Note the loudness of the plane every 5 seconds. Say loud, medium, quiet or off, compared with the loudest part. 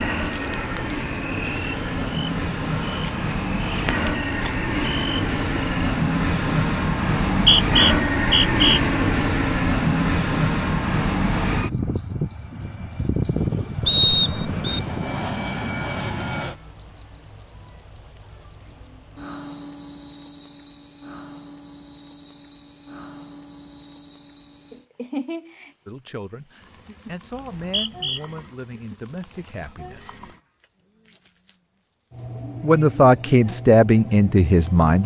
medium, loud, loud, medium, off, off, off.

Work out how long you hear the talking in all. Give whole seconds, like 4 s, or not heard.
7 s.